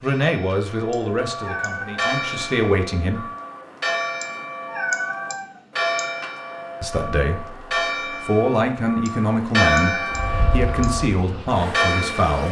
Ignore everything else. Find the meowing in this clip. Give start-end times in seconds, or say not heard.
0.9-2.1, 4.2-6.1, 9.1-10.9.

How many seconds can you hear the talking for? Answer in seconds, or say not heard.
9 s.